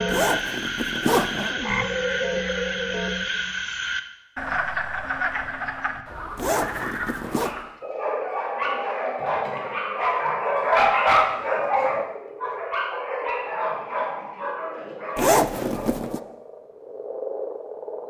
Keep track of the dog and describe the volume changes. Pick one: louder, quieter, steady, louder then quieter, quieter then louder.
louder then quieter.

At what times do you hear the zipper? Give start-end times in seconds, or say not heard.
0.1-1.6, 6.3-7.5, 15.2-16.2.